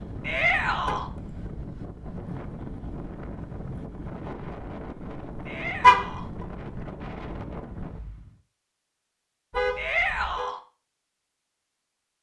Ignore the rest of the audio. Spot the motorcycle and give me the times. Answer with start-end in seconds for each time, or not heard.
not heard.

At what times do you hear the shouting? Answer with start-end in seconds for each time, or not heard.
0.2-1.1, 5.5-6.3, 9.8-10.6.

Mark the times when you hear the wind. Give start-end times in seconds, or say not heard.
0.0-8.4.